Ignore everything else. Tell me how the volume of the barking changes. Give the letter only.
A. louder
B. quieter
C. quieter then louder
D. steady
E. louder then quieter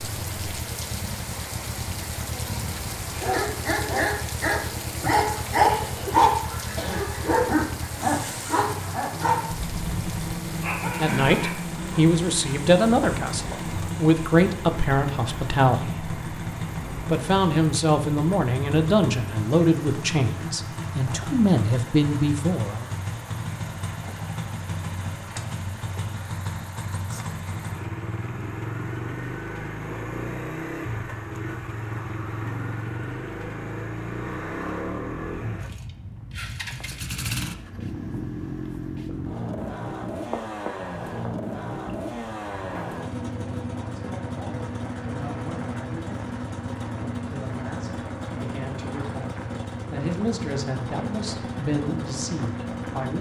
E.